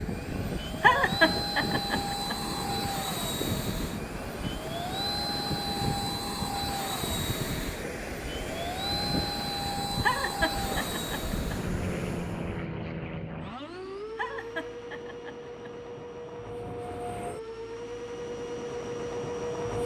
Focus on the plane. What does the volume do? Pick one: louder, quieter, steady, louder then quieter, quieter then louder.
steady.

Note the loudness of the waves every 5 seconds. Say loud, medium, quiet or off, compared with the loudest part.
loud, loud, loud, off.